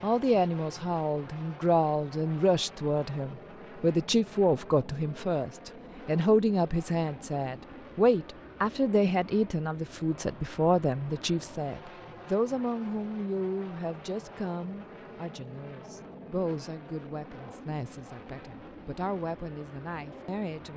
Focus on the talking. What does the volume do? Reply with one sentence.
The volume of the talking goes down.